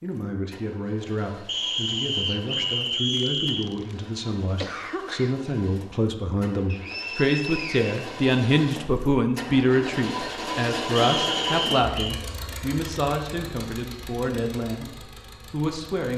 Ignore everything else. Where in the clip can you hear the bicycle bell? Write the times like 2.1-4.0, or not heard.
not heard.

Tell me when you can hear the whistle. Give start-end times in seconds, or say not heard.
1.4-3.6, 6.7-8.2, 10.9-12.2.